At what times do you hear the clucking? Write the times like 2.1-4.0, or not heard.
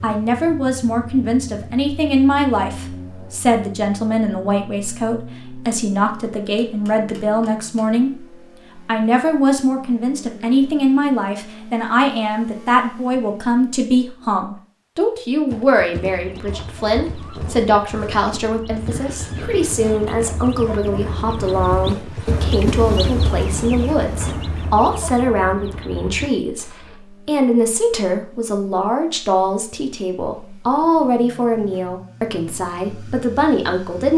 16.1-27.0.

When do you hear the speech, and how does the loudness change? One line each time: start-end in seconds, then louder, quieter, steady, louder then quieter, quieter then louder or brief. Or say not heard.
0.0-34.1 steady.